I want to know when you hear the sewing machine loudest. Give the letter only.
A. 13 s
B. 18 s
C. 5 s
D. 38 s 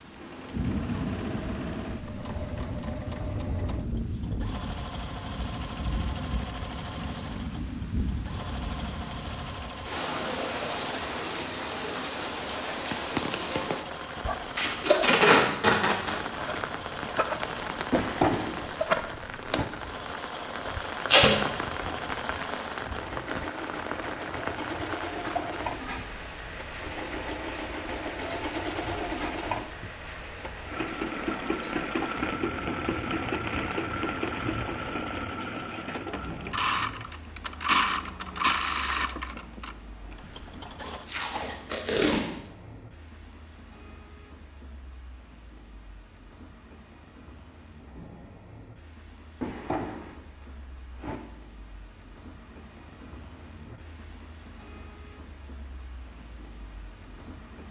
D.